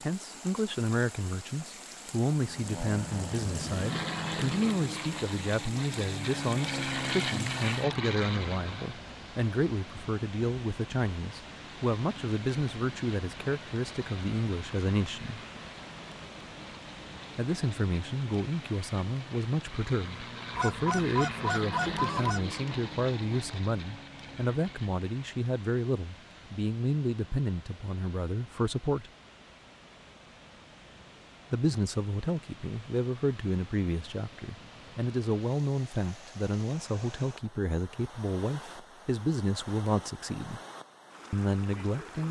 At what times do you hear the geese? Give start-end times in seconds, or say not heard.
20.6-22.4.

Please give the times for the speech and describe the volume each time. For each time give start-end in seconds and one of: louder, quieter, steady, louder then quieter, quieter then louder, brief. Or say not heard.
0.0-15.4 steady
17.4-29.1 steady
31.5-40.6 steady
41.3-42.2 brief.